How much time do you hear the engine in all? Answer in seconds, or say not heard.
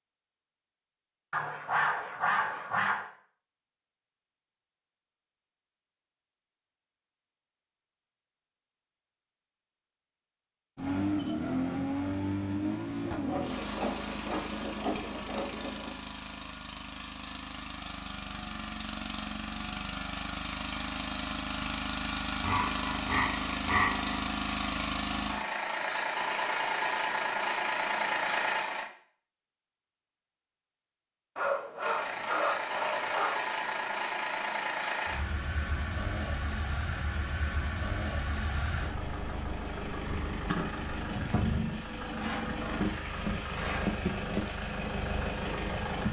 32 s.